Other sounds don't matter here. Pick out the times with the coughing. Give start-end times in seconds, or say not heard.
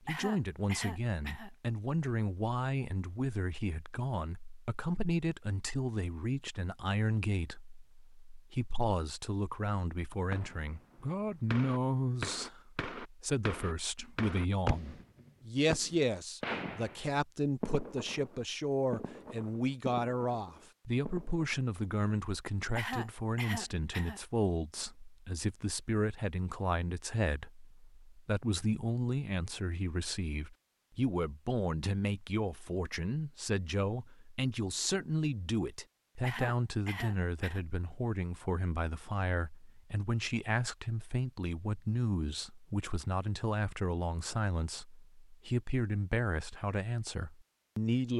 0.1-1.5, 22.8-24.2, 36.2-37.6.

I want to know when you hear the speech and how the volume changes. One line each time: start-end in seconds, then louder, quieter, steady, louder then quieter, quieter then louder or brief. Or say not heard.
0.0-48.1 steady.